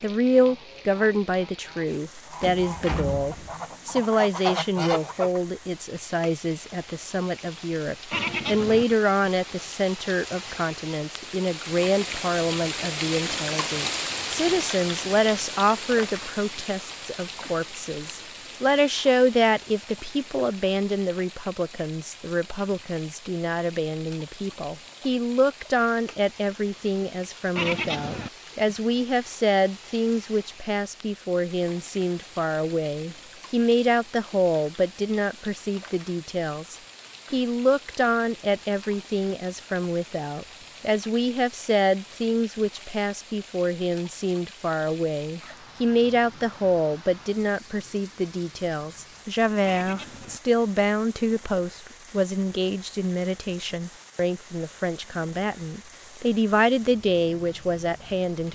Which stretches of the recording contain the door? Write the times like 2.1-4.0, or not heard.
2.4-3.5.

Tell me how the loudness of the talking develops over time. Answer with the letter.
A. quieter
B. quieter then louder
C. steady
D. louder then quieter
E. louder
C.